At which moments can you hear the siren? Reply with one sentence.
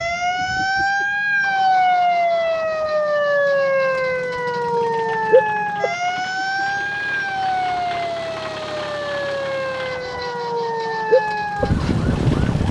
The siren can be heard from 0.0 to 12.6 s.